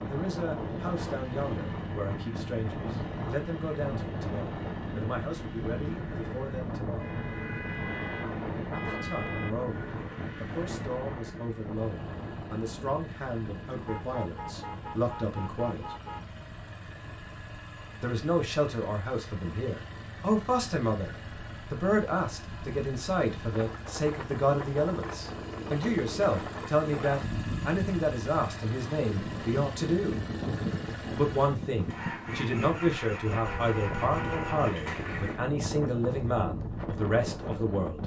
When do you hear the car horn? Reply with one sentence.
You can hear the car horn from 7.0 to 9.5 s, from 13.8 to 16.2 s and from 33.5 to 34.6 s.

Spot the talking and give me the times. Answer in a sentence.
You can hear the talking from 0.0 to 7.2 s, from 8.7 to 15.9 s, from 18.0 to 30.2 s and from 31.1 to 38.0 s.